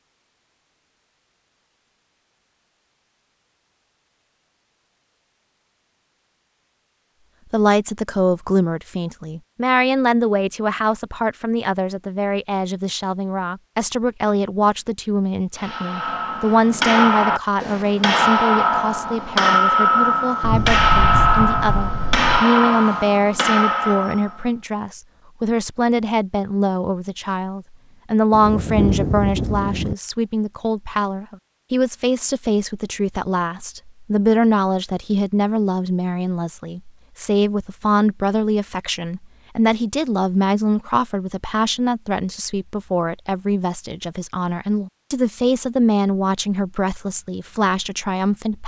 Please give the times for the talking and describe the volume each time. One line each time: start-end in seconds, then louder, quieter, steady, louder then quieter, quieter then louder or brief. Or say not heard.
7.5-48.6 steady.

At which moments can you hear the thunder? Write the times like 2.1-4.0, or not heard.
20.4-22.4, 28.3-29.9.